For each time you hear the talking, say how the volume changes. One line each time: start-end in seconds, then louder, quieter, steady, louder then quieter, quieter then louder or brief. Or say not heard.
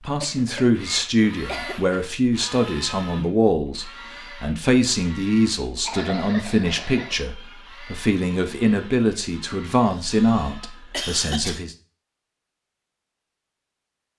0.1-11.8 steady.